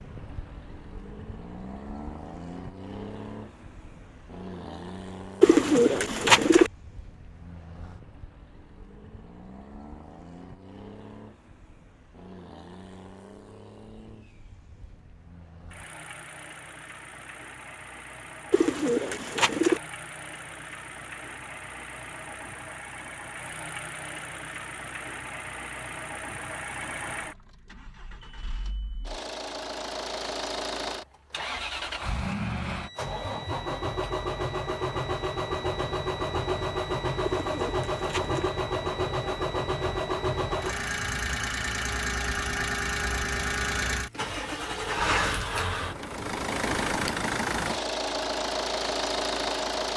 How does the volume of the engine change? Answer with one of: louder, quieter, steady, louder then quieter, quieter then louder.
louder.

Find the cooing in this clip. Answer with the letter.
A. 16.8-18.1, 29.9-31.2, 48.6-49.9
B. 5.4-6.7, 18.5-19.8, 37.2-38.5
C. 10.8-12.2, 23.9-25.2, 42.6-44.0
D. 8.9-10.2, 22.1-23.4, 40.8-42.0
B.